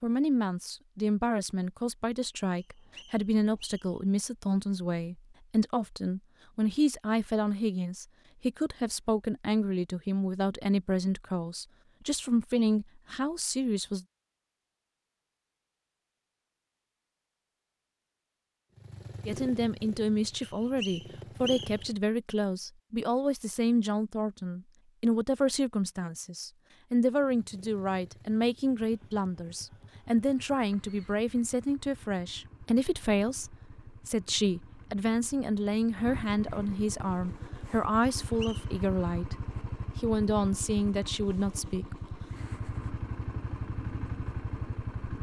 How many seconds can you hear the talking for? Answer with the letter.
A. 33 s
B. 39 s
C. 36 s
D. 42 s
C.